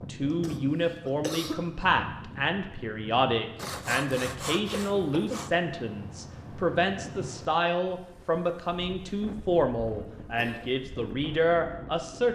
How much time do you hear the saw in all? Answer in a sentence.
The saw can be heard for 2 seconds in total.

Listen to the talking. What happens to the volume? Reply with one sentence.
The volume of the talking stays about the same.